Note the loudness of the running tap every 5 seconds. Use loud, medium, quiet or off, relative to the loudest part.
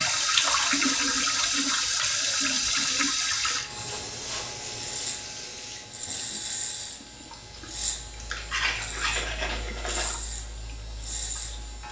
loud, quiet, quiet.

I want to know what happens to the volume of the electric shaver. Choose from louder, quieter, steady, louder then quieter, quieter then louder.
louder.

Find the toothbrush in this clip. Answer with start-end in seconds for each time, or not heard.
8.2-10.2.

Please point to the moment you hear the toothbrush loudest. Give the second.
9 s.